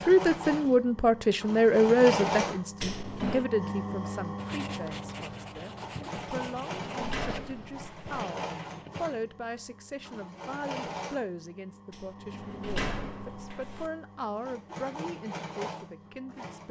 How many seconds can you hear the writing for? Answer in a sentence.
The writing can be heard for 5 seconds in total.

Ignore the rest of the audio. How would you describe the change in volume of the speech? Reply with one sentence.
The volume of the speech goes down.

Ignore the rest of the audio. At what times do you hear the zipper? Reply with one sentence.
The zipper can't be heard in this clip.